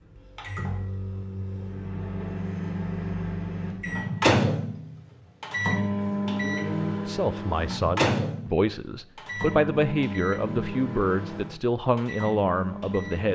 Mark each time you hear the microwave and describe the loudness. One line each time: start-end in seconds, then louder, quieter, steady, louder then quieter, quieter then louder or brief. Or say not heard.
0.0-13.3 louder then quieter.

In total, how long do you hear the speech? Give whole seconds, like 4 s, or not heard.
6 s.